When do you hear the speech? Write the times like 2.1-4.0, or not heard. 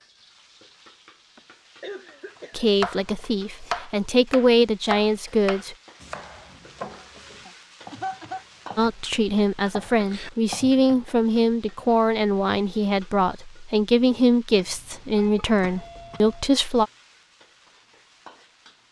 2.5-5.8, 8.8-16.9.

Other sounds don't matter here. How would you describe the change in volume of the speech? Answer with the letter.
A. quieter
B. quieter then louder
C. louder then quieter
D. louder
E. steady
E.